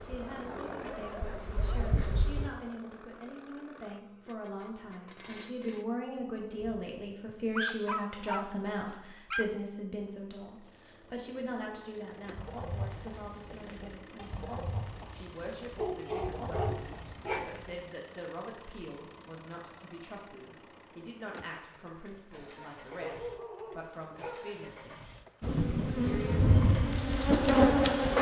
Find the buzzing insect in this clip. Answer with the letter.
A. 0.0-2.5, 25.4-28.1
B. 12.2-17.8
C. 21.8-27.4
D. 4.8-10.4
A.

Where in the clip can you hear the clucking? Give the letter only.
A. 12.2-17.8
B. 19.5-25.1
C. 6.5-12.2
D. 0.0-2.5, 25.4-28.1
A.